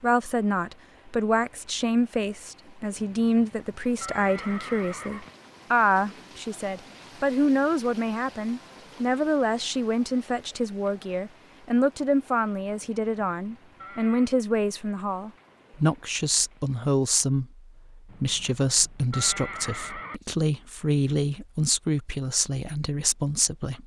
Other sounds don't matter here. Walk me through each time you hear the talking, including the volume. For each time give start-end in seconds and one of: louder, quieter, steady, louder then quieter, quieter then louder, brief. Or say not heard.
0.0-23.8 steady.